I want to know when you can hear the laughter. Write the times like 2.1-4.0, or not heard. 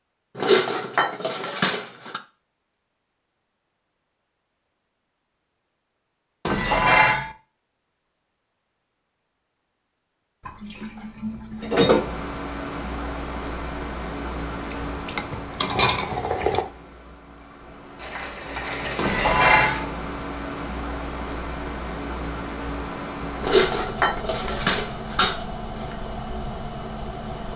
not heard.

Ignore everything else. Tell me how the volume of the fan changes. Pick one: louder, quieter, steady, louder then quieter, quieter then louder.
quieter then louder.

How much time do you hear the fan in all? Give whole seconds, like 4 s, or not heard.
16 s.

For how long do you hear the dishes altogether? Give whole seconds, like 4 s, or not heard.
10 s.